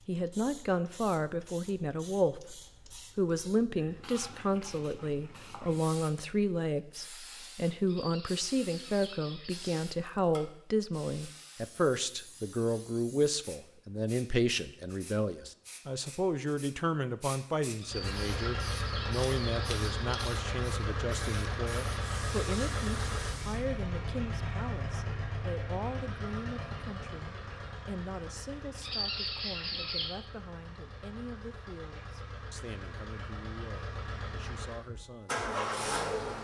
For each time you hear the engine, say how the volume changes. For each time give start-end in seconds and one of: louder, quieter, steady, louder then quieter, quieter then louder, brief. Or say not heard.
17.8-36.4 quieter then louder.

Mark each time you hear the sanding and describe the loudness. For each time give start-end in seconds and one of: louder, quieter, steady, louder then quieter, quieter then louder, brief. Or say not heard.
not heard.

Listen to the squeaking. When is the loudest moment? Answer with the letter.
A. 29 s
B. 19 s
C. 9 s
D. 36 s
A.